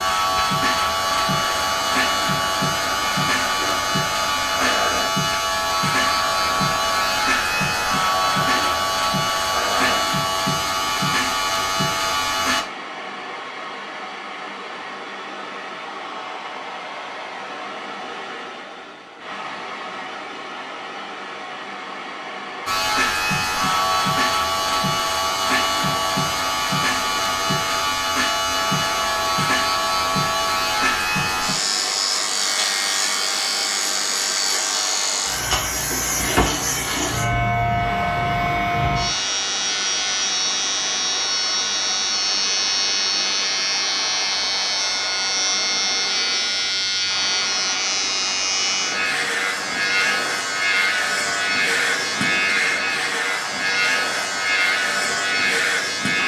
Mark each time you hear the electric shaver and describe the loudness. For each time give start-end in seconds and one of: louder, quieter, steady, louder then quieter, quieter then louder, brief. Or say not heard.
0.0-12.7 steady
22.6-56.2 steady.